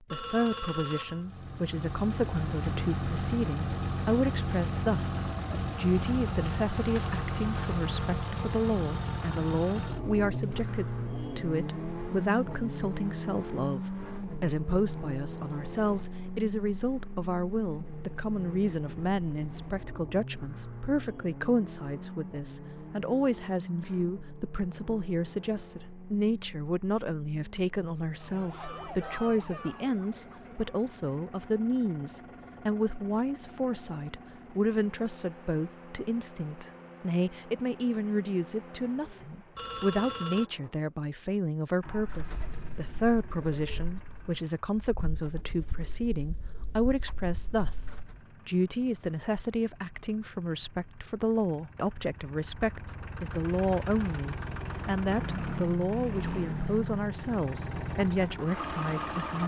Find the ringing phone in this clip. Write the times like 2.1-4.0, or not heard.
0.1-1.4, 39.5-40.5.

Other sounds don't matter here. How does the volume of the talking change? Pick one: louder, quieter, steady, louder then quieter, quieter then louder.
steady.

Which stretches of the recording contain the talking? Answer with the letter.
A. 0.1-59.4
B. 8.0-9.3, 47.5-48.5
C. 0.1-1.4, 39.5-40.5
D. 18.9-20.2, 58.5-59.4
A.